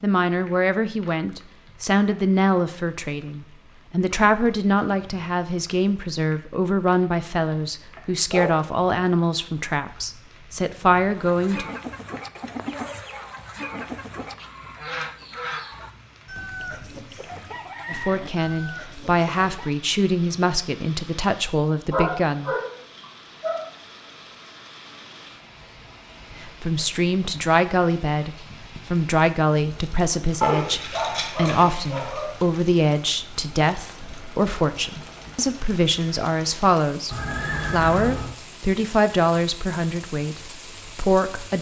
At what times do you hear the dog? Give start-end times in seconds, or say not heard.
8.3-8.9, 21.9-23.7, 30.4-32.3.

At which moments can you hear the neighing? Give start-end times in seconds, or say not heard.
37.1-38.3.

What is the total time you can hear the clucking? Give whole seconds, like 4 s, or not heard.
9 s.